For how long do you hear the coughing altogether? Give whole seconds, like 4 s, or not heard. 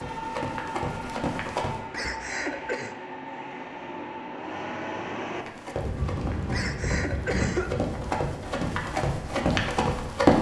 2 s.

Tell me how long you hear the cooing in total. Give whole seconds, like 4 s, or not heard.
not heard.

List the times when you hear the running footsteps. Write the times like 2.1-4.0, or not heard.
0.0-1.8, 5.3-10.3.